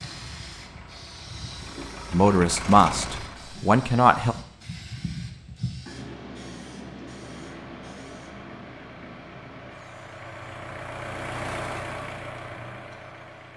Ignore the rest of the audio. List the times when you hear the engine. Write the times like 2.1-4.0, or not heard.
0.0-3.6, 7.2-13.5.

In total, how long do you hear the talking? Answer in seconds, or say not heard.
2 s.